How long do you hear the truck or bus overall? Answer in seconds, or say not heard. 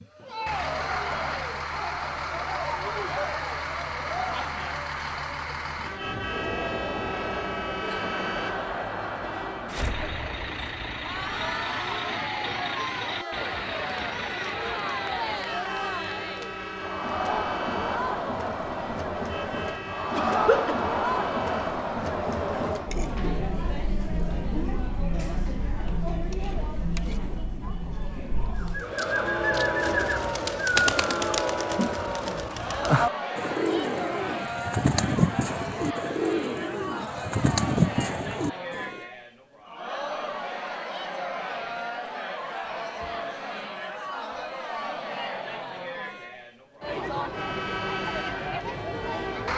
24 s.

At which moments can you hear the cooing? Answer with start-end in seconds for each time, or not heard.
28.6-39.0.